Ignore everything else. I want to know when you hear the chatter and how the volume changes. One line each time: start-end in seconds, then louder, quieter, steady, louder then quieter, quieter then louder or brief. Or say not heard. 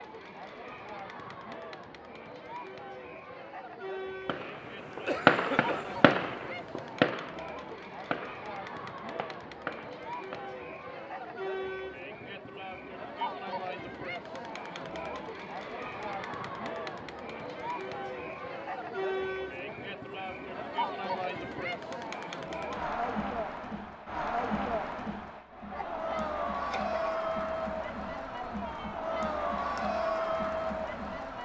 0.0-31.3 louder.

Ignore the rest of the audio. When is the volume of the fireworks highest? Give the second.
5 s.